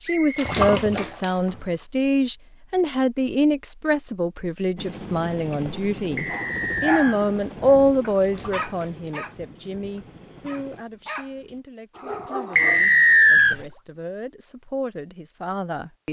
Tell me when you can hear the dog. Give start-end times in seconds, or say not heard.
6.2-12.8.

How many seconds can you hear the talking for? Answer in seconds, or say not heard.
16 s.